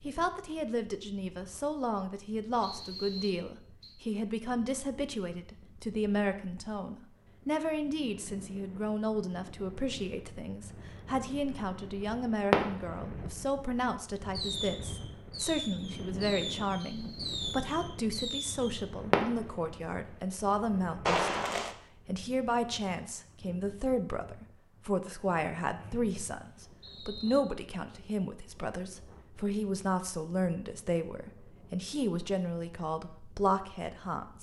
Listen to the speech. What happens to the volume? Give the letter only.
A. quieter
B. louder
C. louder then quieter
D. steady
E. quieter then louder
D.